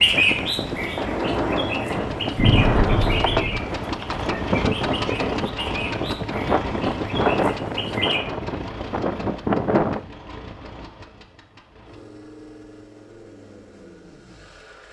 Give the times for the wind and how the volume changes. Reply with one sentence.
The wind can be heard from 0.0 to 10.1 s, at a steady volume.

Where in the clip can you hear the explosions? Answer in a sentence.
You can hear the explosions from 2.4 to 3.6 s.